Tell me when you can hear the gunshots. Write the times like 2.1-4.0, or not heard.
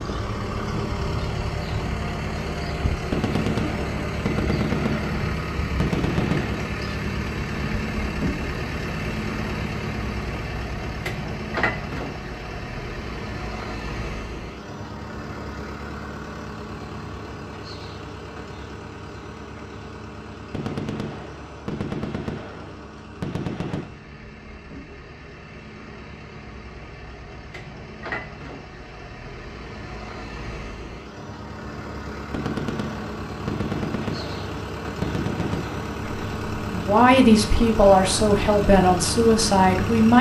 3.1-6.7, 20.5-23.9, 32.3-35.9.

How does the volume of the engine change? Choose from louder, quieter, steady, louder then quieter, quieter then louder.
quieter then louder.